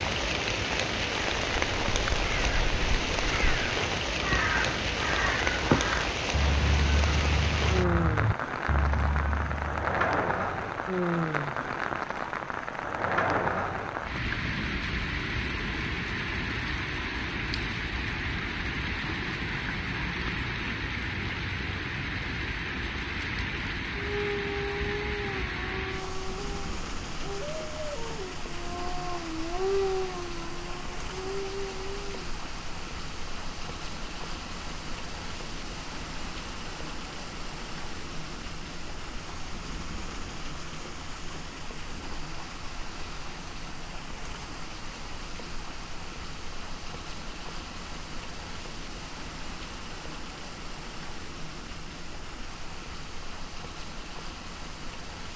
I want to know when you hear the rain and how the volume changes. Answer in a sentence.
You can hear the rain from 0.0 to 55.3 s, getting quieter.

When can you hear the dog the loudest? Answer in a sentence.
The loudest moment of the dog is at 30 seconds.